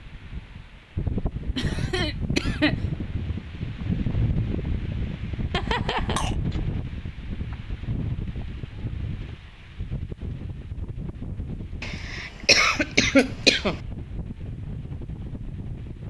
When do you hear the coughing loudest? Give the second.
13 s.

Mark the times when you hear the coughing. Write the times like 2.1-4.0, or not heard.
1.6-2.8, 5.5-6.3, 11.8-13.8.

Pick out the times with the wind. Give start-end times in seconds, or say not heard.
0.0-16.0.